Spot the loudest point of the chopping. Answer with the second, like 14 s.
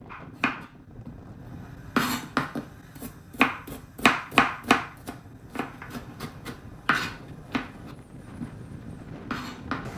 4 s.